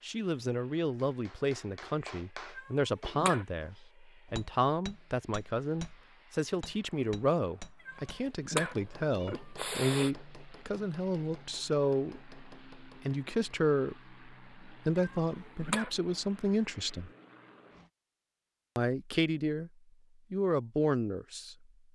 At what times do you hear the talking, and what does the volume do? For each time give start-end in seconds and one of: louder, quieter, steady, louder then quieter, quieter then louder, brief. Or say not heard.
0.0-17.1 steady
18.8-19.7 brief
20.3-21.6 brief.